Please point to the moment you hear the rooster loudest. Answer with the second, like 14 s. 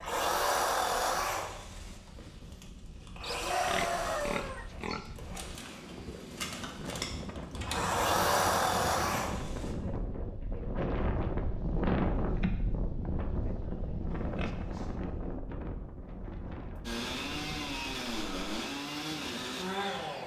4 s.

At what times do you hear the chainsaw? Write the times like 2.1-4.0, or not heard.
0.0-9.7, 16.9-20.2.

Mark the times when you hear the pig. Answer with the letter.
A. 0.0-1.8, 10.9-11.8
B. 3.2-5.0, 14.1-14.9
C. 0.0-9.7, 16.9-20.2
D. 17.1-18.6
B.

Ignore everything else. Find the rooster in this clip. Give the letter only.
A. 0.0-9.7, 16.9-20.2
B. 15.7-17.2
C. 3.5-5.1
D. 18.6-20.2
C.